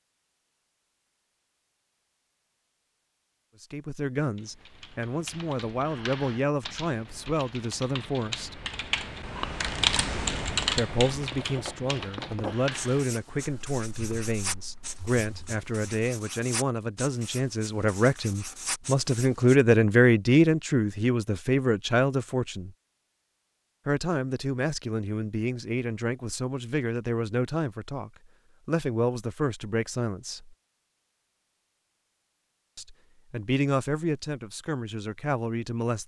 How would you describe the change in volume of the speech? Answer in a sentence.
The volume of the speech goes up, then down.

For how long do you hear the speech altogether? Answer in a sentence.
You can hear the speech for 27 seconds altogether.